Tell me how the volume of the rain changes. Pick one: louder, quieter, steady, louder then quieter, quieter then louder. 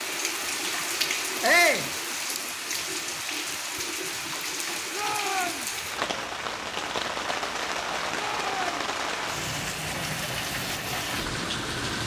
steady.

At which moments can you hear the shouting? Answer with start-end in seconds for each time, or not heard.
1.4-1.9, 4.9-5.7, 8.1-8.8.